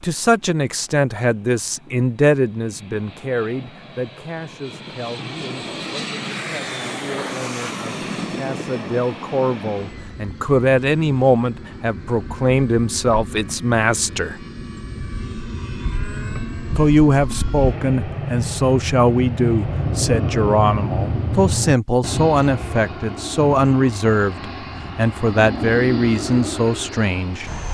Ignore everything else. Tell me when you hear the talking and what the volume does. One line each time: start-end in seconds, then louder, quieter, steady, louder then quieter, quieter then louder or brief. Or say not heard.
0.0-14.4 quieter then louder
16.8-27.6 steady.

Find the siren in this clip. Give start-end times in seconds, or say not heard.
not heard.